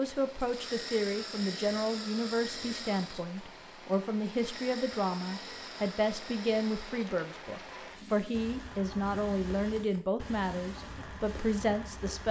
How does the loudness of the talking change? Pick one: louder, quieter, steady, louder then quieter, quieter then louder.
steady.